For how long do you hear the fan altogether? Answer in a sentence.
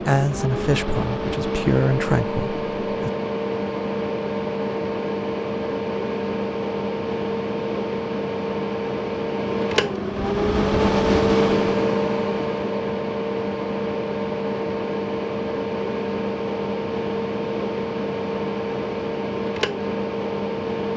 You can hear the fan for 21 seconds altogether.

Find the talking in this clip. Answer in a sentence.
You can hear the talking from 0.0 to 3.1 s.